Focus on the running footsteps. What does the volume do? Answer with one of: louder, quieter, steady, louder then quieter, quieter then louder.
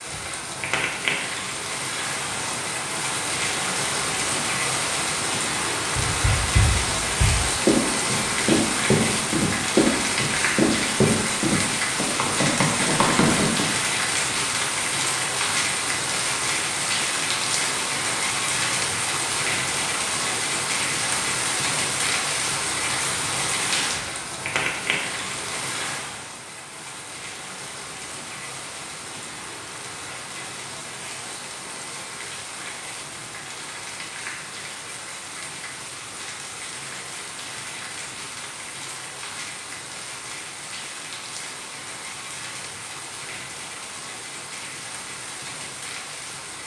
steady.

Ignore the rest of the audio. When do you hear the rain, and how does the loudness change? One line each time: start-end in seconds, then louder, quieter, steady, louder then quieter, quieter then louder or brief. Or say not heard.
0.0-46.6 quieter.